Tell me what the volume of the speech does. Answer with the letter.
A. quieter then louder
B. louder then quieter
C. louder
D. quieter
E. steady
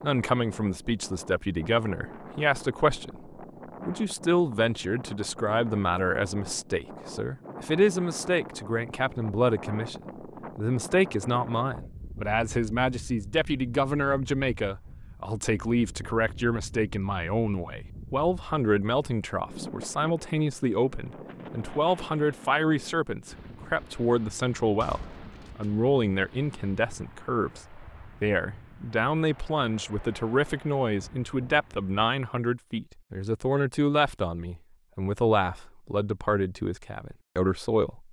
E.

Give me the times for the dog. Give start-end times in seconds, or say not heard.
not heard.